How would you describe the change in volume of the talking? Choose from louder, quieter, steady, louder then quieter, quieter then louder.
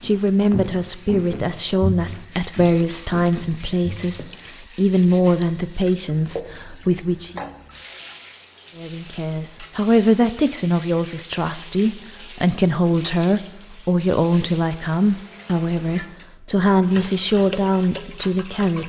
steady.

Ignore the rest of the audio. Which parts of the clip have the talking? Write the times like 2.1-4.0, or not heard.
0.0-7.4, 8.8-18.8.